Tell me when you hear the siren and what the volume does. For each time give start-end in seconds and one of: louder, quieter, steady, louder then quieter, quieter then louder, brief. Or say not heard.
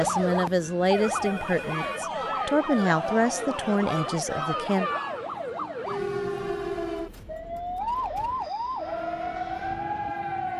0.0-10.5 steady.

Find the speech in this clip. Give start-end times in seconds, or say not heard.
0.0-4.9.